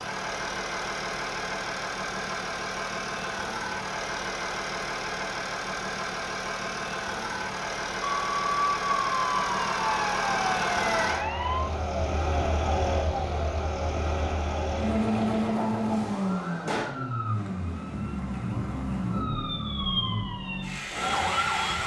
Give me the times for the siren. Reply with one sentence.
You can hear the siren from 8.1 to 21.8 s.